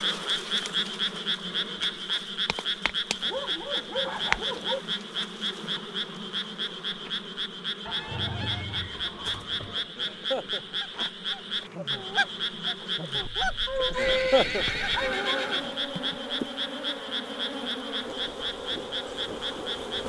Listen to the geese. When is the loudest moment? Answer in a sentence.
The loudest moment of the geese is at 14 seconds.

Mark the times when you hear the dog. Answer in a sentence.
You can hear the dog from 3.2 to 4.8 s, from 7.8 to 9.8 s and from 13.7 to 15.7 s.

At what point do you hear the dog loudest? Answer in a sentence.
The loudest moment of the dog is at 14 seconds.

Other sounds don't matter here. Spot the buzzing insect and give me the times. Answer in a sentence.
You can hear the buzzing insect from 0.0 to 20.0 s.